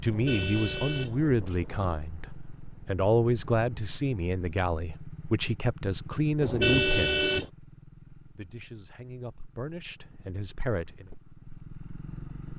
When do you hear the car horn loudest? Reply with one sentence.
The loudest moment of the car horn is at 7 seconds.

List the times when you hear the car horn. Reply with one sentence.
You can hear the car horn from 0.1 to 1.9 s and from 6.4 to 7.5 s.